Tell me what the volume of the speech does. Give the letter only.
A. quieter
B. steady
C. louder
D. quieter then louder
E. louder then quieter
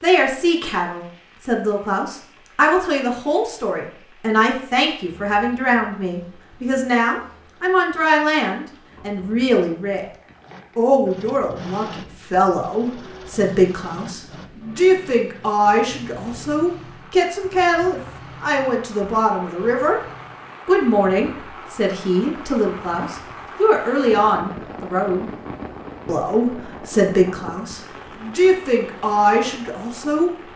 B.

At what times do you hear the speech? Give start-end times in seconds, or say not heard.
0.0-10.1, 10.8-20.0, 20.6-25.2, 26.1-30.3.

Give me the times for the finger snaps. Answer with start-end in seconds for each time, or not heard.
not heard.